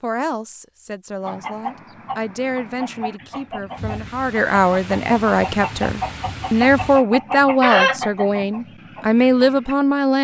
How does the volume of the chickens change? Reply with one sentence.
The loudness of the chickens goes up.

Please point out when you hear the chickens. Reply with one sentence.
The chickens can be heard from 1.2 to 9.8 s.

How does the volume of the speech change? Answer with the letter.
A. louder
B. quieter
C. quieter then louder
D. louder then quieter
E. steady
A.